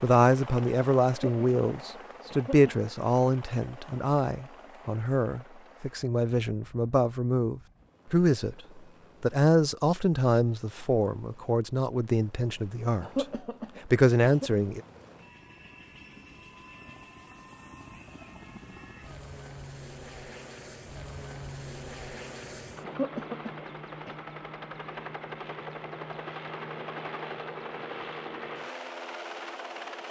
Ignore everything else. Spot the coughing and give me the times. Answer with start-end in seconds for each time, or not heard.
1.1-3.0, 13.0-14.5, 22.8-24.1.